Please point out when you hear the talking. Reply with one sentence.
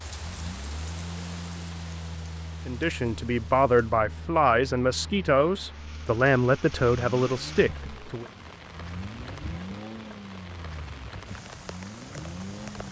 You can hear the talking from 2.6 to 8.2 s.